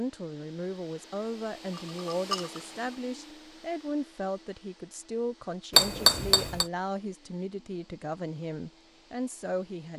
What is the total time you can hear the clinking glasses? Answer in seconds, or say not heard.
2 s.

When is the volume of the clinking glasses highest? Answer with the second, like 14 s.
6 s.